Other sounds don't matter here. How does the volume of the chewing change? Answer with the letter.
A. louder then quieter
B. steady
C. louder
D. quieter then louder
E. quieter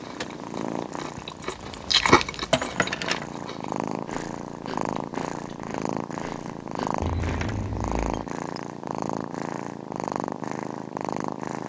A.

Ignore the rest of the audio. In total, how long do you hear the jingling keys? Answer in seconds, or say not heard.
3 s.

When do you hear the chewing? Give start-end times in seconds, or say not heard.
0.0-7.3.